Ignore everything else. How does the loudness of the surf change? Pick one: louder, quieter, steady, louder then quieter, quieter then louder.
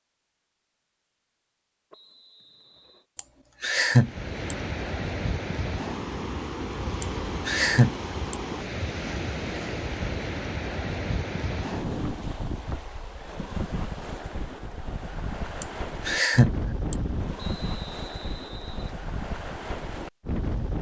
steady.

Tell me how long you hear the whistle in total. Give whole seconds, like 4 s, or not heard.
3 s.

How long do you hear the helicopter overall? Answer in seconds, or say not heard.
not heard.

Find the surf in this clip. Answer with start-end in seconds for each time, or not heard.
4.0-20.7.